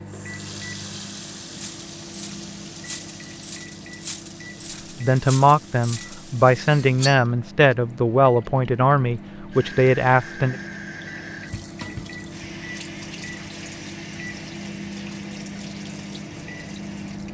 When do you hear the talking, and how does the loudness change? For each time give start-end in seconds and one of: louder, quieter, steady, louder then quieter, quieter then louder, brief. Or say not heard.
5.0-10.6 steady.